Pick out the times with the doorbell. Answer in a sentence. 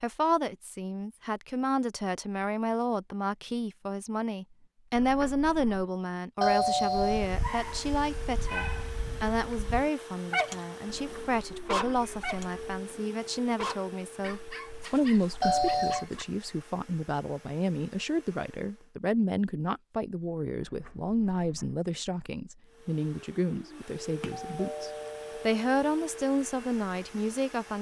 The doorbell can be heard from 6.4 to 7.2 s, from 15.4 to 16.1 s and from 24.2 to 25.5 s.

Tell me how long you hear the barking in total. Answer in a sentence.
The barking can be heard for 9 seconds in total.